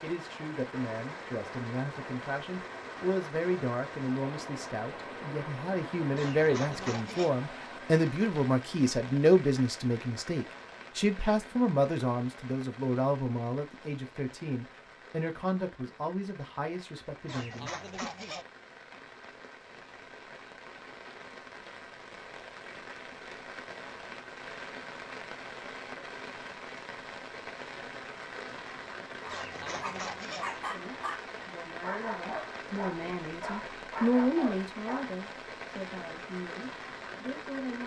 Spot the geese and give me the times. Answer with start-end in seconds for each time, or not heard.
6.2-7.3, 17.2-18.4, 29.2-30.4.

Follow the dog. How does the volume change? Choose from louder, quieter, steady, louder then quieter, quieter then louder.
steady.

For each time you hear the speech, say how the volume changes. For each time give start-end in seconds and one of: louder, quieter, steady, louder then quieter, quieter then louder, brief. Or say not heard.
0.0-18.1 louder then quieter
30.7-37.8 louder then quieter.